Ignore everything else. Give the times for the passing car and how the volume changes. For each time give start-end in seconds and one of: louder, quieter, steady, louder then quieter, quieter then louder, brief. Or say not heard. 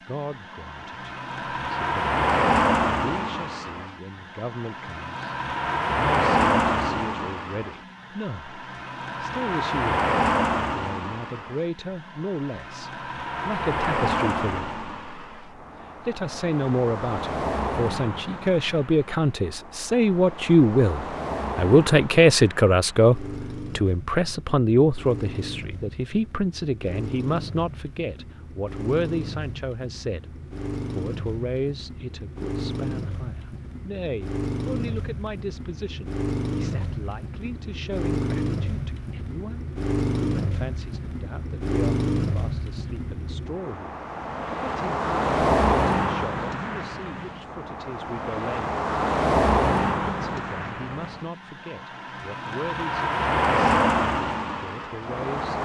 0.1-55.6 quieter then louder.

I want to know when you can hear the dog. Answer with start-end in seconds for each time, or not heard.
not heard.